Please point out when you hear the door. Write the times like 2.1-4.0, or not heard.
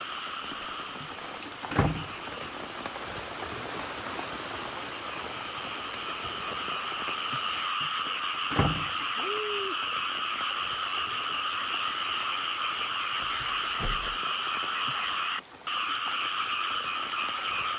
1.0-2.5, 7.8-8.9, 13.2-14.2.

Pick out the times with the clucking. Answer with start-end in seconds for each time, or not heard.
not heard.